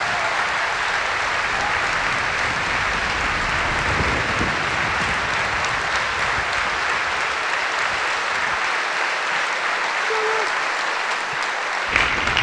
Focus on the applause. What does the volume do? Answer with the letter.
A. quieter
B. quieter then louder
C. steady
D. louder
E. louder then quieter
C.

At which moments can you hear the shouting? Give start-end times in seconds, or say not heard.
10.1-10.5.